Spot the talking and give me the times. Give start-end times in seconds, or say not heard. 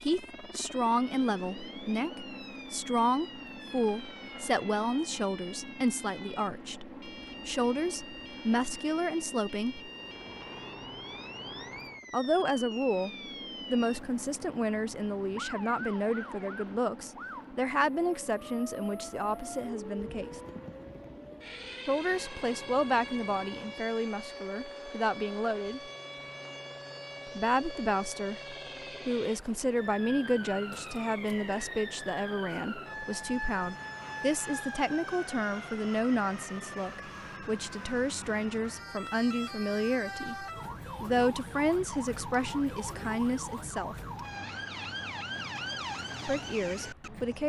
0.0-9.9, 12.1-13.1, 13.7-20.4, 21.9-25.8, 27.2-44.0, 46.2-47.4.